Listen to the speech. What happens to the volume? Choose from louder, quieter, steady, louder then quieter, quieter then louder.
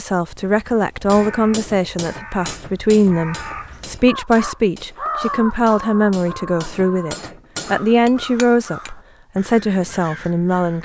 steady.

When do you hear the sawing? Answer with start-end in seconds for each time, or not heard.
not heard.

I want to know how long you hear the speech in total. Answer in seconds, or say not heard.
11 s.